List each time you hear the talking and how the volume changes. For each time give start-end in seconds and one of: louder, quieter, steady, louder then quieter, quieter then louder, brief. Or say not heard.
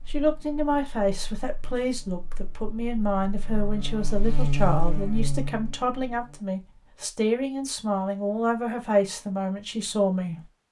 0.1-10.4 steady.